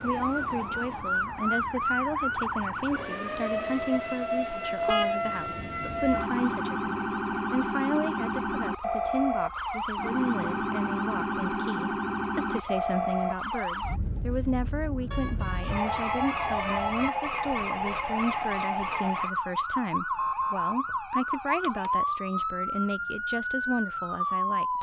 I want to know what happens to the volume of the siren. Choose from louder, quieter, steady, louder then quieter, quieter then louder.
steady.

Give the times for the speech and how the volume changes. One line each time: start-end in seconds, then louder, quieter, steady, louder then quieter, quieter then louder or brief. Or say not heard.
0.0-24.7 steady.